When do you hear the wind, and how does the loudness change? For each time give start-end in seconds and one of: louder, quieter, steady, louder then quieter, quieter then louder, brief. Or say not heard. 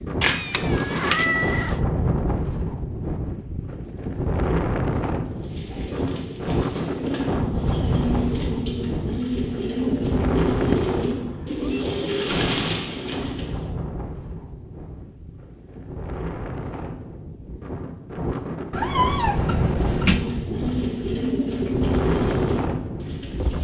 0.0-23.5 quieter then louder.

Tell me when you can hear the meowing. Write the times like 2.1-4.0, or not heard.
0.2-1.8, 9.8-11.8, 18.7-20.2.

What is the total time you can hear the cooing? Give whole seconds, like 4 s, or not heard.
12 s.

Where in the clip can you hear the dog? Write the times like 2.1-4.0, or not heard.
not heard.